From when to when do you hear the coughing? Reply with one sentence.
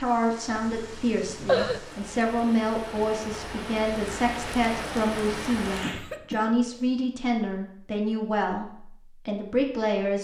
The coughing can be heard from 0.5 to 1.8 s and from 5.8 to 6.9 s.